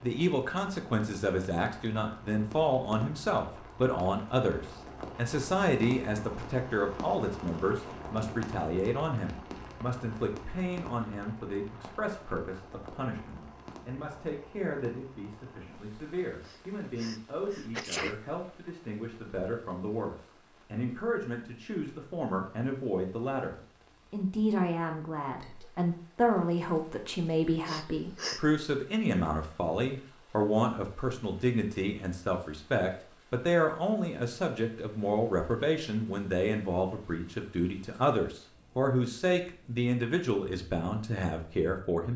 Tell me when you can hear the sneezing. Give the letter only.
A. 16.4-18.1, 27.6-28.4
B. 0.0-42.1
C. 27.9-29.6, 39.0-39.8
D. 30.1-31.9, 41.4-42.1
A.